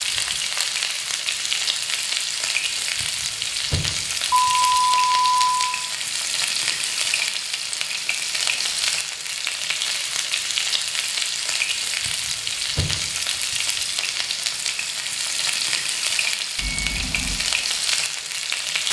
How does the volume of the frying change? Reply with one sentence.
The volume of the frying stays about the same.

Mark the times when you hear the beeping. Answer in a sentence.
You can hear the beeping from 4.3 to 5.5 s and from 16.6 to 17.4 s.